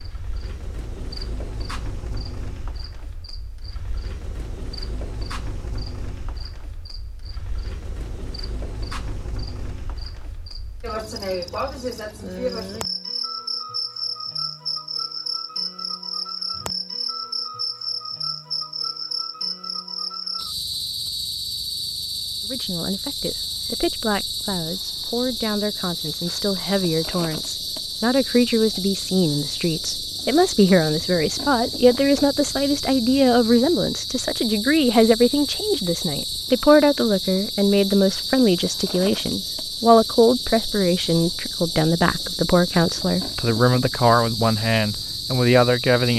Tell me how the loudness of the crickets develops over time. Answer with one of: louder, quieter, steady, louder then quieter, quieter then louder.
louder.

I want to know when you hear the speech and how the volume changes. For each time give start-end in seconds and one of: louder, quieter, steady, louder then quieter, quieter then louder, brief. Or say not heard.
22.4-46.1 louder.